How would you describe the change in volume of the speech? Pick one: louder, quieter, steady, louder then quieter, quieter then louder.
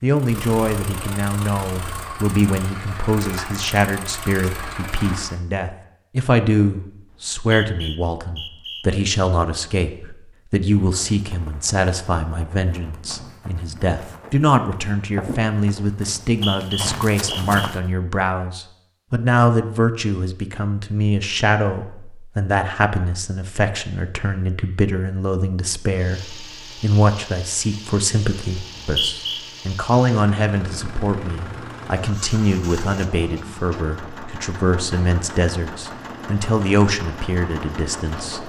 steady.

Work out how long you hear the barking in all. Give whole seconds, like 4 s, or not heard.
not heard.